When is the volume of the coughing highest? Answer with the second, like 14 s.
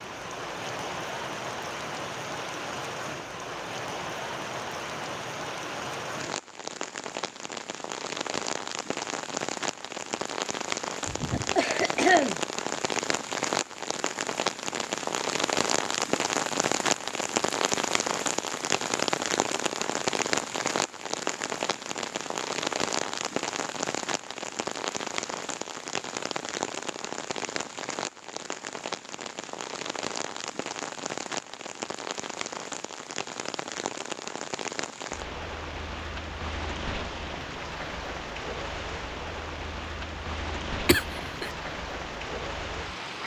12 s.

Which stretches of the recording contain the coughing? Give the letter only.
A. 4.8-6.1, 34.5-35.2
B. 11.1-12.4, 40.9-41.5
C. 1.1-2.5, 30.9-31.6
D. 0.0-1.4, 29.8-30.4
B.